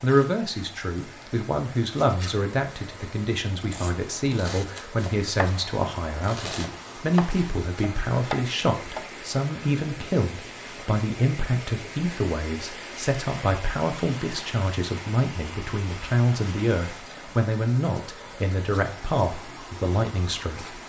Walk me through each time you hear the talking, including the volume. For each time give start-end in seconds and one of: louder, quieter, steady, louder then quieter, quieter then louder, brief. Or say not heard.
0.0-20.8 steady.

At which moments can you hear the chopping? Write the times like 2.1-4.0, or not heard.
3.6-9.1.